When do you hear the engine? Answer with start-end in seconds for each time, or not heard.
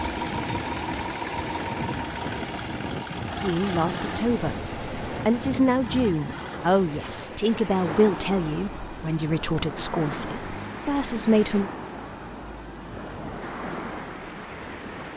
0.0-15.1.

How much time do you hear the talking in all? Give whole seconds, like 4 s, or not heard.
8 s.